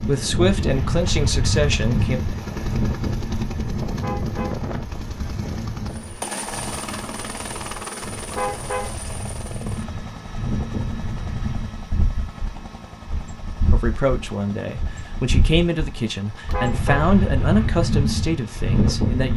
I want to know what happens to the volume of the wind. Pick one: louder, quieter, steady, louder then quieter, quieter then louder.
quieter then louder.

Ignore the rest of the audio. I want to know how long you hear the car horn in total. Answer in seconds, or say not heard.
2 s.